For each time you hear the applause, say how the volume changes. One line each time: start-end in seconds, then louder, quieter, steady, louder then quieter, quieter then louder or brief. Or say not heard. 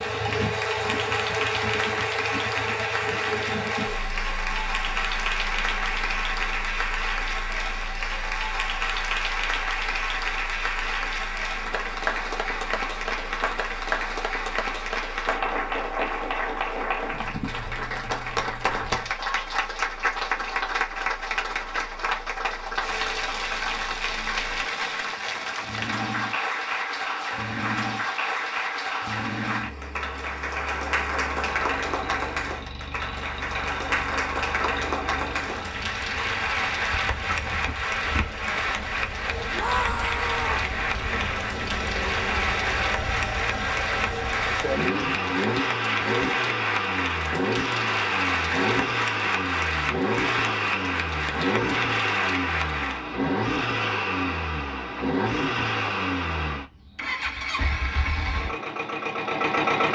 0.0-53.0 steady.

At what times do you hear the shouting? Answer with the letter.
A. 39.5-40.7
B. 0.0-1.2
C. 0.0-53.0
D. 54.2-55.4
A.